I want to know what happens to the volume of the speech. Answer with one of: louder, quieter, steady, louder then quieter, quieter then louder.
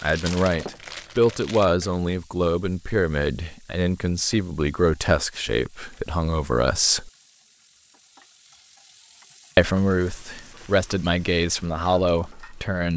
steady.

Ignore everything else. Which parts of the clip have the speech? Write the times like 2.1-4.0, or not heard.
0.0-7.1, 9.6-12.9.